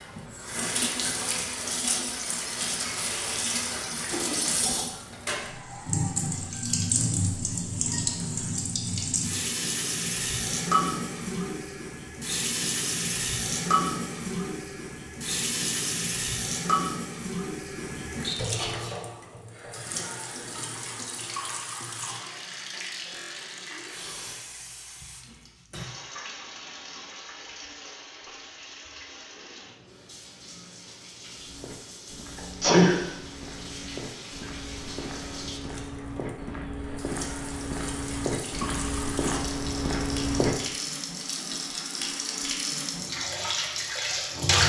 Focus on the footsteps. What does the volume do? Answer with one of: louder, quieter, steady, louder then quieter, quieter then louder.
louder.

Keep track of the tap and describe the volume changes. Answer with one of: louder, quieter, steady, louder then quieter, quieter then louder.
quieter then louder.